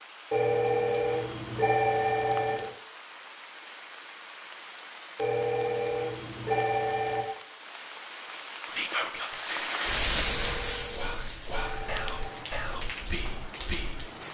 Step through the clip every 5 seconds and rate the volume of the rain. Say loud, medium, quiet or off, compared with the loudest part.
medium, loud, loud.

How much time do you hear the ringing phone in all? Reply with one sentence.
The ringing phone can be heard for 7 seconds in total.